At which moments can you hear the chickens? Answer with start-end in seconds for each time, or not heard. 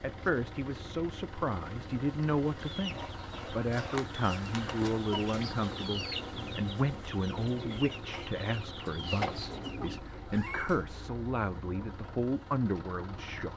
2.6-10.6.